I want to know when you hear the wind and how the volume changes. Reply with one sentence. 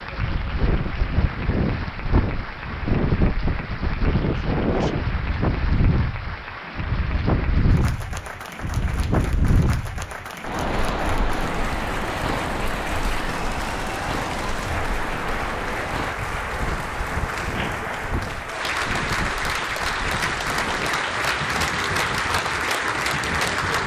You can hear the wind from 0.0 to 23.8 s, getting quieter.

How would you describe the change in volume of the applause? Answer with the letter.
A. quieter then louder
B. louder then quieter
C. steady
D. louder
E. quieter
D.